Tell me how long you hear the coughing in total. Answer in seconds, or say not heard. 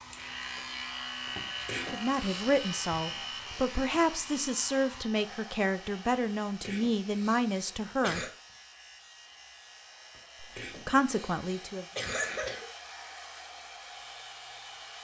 6 s.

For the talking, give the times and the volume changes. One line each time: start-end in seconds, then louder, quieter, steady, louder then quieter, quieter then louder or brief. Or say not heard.
1.8-8.2 steady
10.4-11.8 brief.